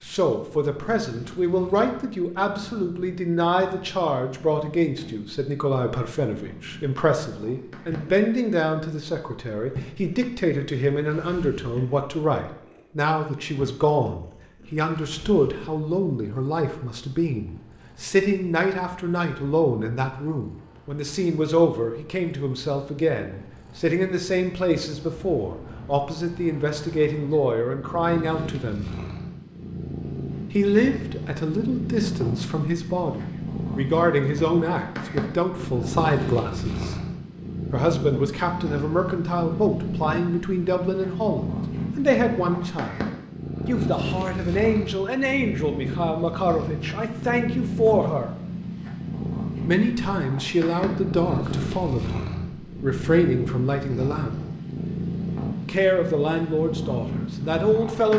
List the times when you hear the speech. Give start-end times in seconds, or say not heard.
0.0-28.9, 30.5-37.0, 37.7-43.0, 43.6-48.3, 49.6-54.4, 55.6-58.1.